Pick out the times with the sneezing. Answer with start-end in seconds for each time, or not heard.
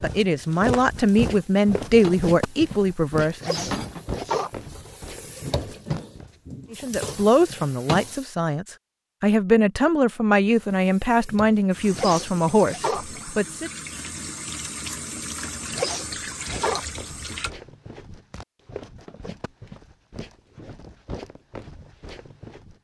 3.4-4.5, 11.9-13.1, 15.7-16.9.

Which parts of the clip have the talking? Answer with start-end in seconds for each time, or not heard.
0.0-3.7, 6.7-13.7.